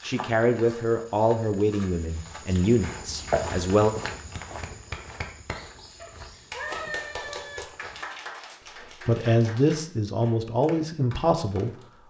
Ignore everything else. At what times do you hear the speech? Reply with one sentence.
The speech can be heard from 0.0 to 4.0 s and from 8.9 to 12.0 s.